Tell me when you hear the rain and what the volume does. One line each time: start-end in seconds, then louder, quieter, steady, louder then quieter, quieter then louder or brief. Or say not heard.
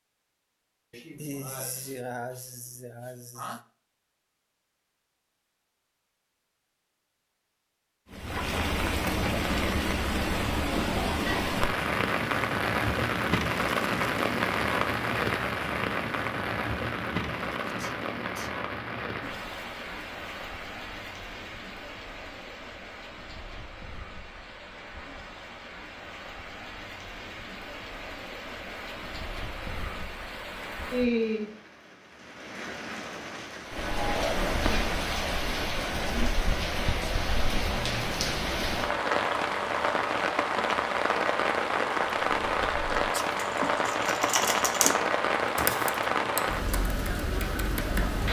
8.1-48.2 quieter then louder.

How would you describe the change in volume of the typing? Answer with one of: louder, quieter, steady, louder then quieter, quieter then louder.
louder then quieter.